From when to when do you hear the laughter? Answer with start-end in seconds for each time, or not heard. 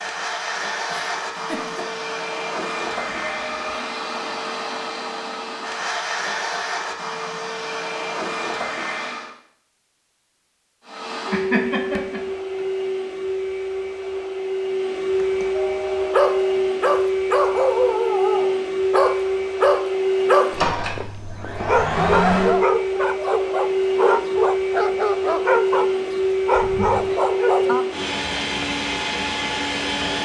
0.9-1.9, 11.3-12.7, 26.5-27.1.